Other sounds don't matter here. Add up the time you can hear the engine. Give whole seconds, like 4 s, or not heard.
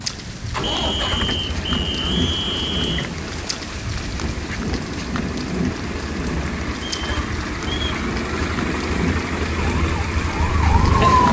11 s.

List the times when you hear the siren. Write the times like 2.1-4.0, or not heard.
9.7-11.2.